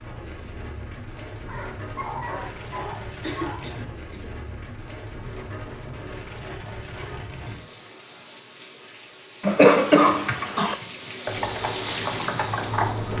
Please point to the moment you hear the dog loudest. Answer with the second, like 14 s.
2 s.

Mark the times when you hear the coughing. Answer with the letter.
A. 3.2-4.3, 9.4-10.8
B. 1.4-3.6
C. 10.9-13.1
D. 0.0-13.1
A.